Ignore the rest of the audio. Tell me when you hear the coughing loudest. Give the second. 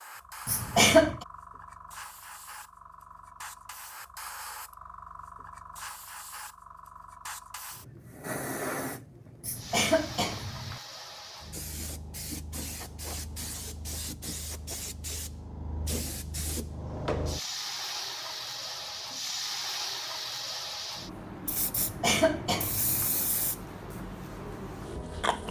1 s.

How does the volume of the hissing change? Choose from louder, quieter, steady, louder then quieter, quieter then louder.
louder.